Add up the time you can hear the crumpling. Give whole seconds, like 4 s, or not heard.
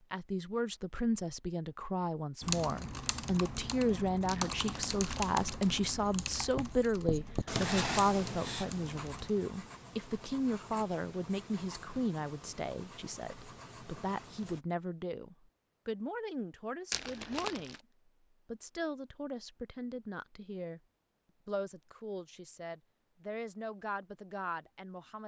2 s.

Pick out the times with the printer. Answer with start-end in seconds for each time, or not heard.
not heard.